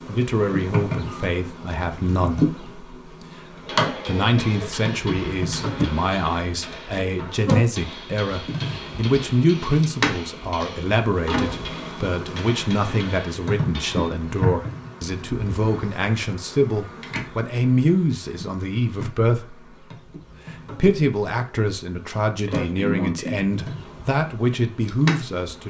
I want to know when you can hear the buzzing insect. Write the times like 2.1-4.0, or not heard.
0.0-25.6.